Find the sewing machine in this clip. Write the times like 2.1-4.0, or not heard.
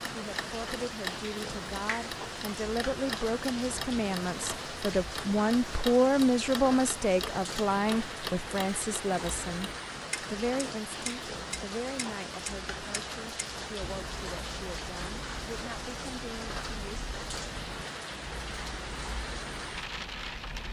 not heard.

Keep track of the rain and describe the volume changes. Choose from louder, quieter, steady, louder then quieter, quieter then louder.
steady.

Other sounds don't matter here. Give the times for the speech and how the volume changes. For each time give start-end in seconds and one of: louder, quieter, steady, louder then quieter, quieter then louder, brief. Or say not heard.
0.1-17.0 louder then quieter.